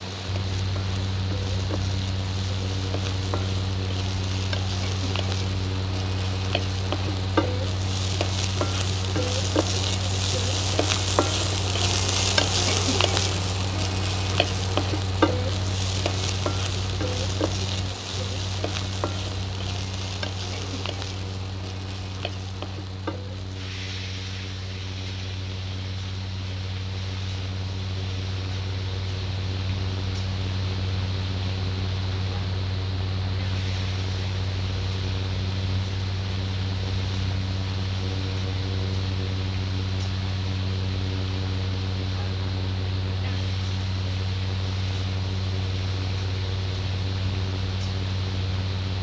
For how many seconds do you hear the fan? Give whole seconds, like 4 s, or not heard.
49 s.